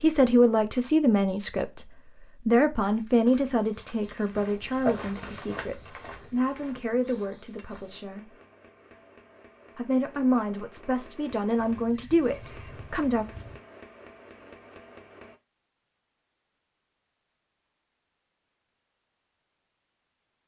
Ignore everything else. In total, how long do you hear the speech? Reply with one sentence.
You can hear the speech for 11 seconds altogether.